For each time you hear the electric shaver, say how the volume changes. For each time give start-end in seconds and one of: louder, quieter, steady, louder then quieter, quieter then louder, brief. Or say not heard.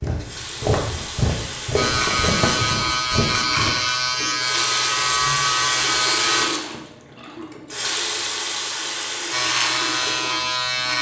1.8-6.5 steady
9.3-10.9 brief.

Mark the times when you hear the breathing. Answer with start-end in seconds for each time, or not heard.
not heard.